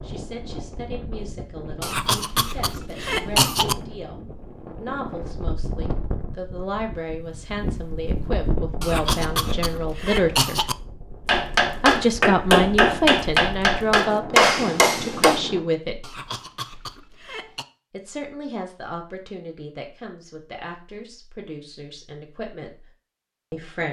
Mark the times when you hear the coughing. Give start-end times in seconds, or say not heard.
1.8-3.8, 8.8-10.8, 16.0-17.6.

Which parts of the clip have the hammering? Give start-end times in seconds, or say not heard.
11.2-15.4.